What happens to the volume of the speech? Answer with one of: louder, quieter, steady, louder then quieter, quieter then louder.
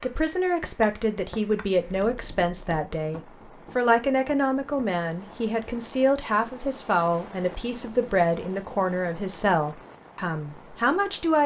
steady.